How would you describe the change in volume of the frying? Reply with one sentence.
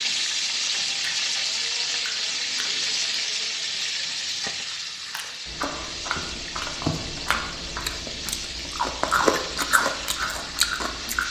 The volume of the frying goes down.